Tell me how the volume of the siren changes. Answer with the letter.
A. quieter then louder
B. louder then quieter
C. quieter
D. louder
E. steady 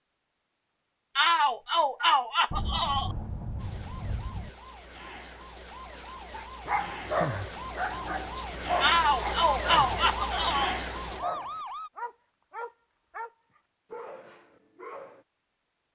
D.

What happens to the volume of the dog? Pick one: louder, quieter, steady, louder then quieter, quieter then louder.
quieter.